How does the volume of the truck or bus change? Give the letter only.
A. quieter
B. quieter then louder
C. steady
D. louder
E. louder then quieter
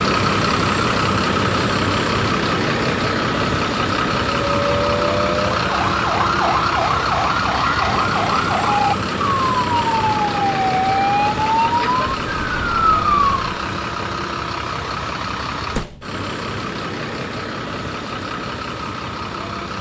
A.